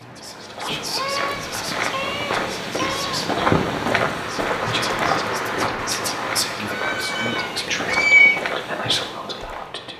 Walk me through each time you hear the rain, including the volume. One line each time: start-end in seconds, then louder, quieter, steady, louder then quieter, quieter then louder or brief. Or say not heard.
0.0-9.9 louder then quieter.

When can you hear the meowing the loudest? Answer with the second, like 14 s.
8 s.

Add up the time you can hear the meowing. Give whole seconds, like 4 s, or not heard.
4 s.